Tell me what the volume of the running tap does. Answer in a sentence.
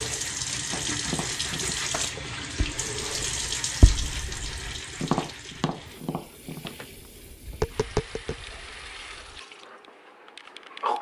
The volume of the running tap goes down.